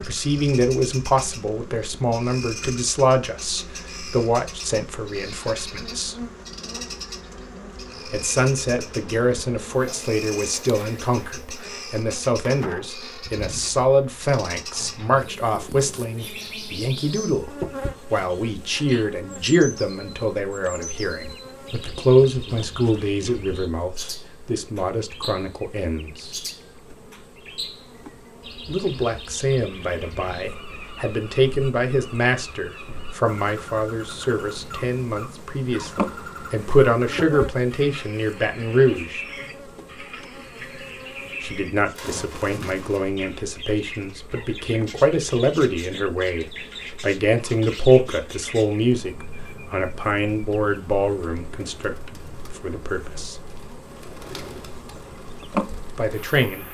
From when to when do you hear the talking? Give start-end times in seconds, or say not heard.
0.0-6.2, 8.1-26.4, 28.6-39.2, 41.4-53.4, 55.9-56.6.